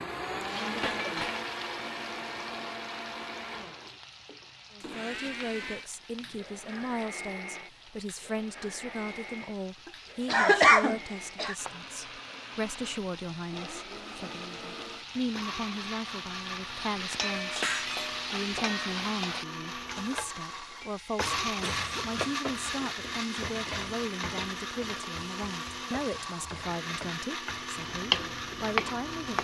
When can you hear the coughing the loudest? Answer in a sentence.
The volume of the coughing peaks at 11 seconds.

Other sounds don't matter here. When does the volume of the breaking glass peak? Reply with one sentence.
The volume of the breaking glass peaks at 18 seconds.